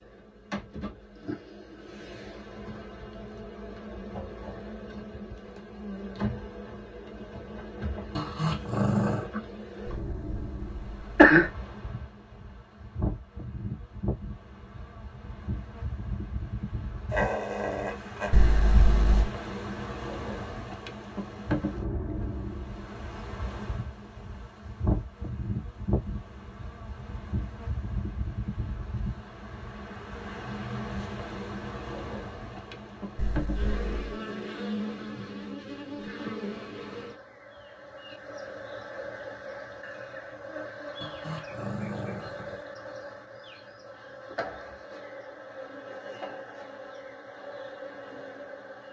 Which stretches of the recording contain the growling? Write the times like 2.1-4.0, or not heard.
8.2-9.3, 17.1-18.3, 41.0-42.6.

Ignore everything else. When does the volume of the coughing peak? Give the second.
11 s.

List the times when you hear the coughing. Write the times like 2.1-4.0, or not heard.
9.8-11.5, 18.3-19.2, 33.1-34.1.